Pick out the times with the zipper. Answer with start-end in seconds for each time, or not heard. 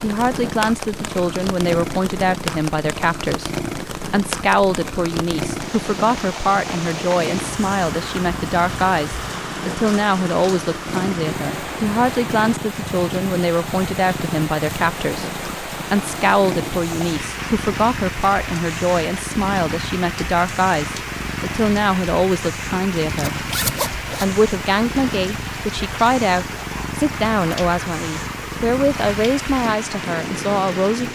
23.1-24.4.